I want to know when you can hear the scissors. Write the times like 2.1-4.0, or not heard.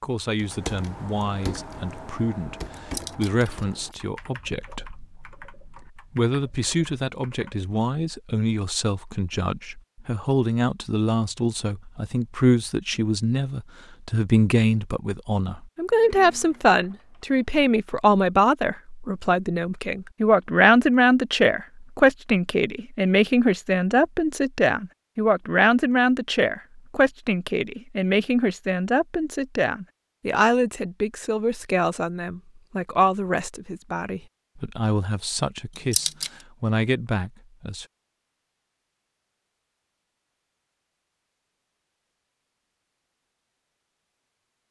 2.8-3.9, 35.8-36.3.